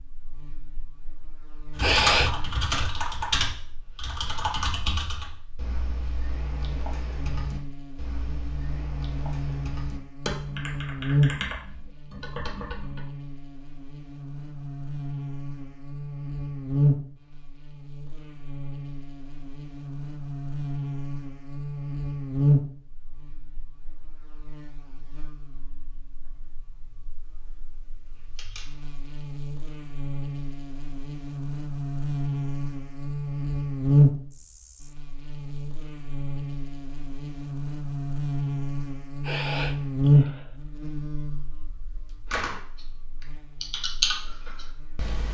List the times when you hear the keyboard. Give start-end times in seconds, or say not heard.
1.8-13.1, 42.2-45.2.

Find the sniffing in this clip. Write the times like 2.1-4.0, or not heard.
1.8-2.9, 39.2-40.5.